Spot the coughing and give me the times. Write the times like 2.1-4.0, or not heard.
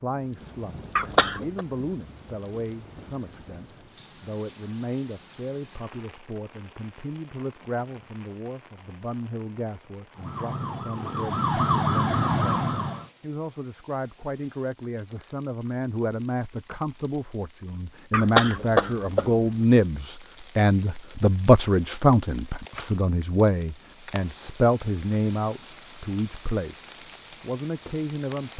0.9-1.6, 18.1-19.4.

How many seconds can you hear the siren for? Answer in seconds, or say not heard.
3 s.